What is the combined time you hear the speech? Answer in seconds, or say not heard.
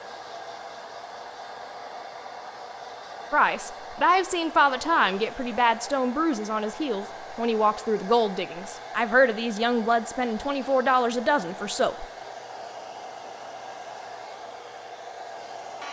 9 s.